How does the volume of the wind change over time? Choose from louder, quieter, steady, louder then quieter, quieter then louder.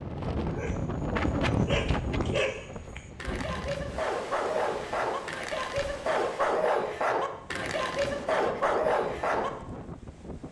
quieter.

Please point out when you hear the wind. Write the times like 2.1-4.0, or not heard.
0.0-10.4.